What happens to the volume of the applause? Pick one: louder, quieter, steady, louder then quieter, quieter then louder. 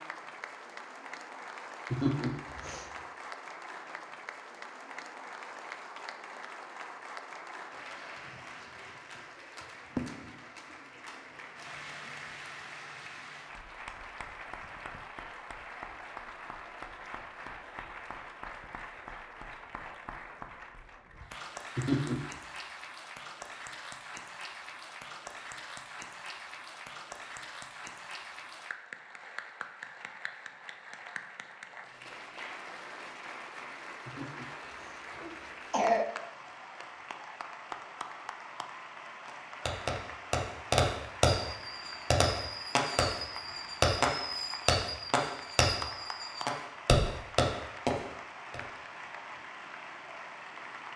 steady.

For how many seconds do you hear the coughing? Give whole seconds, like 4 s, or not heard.
3 s.